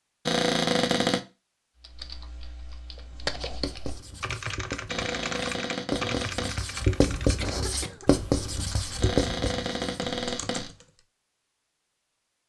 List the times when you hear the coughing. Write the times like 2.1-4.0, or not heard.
7.3-8.1.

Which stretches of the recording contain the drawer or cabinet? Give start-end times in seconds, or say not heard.
0.2-1.2, 4.8-6.6, 9.0-10.7.